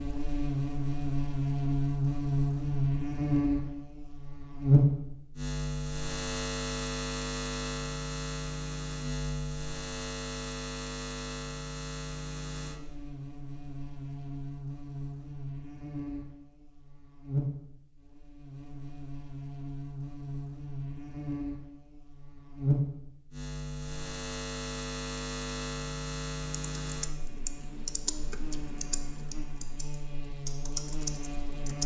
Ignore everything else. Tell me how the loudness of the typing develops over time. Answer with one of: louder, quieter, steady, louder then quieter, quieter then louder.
quieter then louder.